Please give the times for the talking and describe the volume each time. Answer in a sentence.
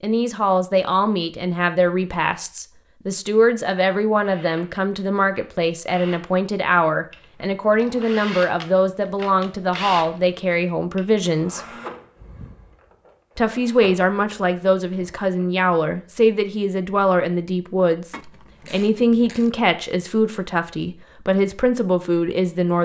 You can hear the talking from 0.0 to 11.6 s, at a steady volume; and from 13.3 to 22.8 s, at a steady volume.